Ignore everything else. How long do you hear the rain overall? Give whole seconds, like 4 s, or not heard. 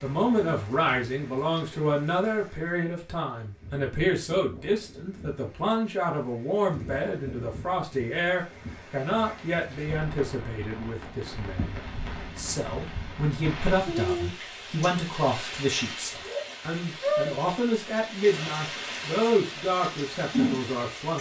21 s.